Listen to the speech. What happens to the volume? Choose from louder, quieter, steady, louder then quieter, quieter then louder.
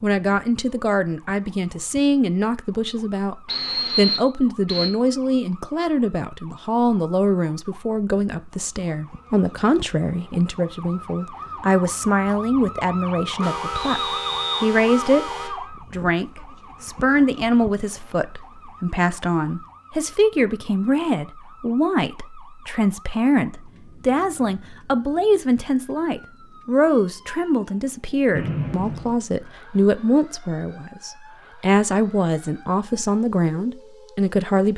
steady.